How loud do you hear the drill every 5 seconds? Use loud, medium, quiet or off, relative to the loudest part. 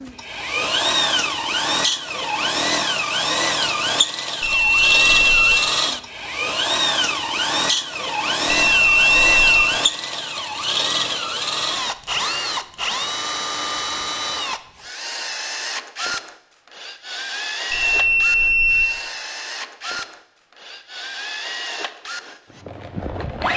loud, loud, loud, medium, medium.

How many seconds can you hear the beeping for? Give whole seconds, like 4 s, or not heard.
3 s.